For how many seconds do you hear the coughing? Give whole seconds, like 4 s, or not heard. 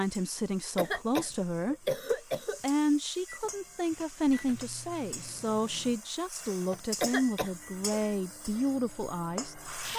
3 s.